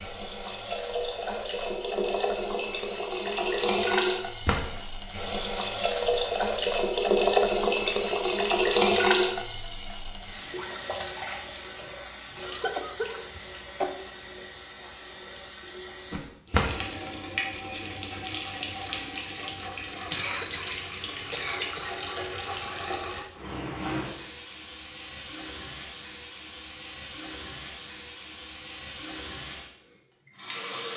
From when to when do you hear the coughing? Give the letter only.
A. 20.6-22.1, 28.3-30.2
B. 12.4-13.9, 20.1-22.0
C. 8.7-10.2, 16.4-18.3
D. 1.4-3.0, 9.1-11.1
B.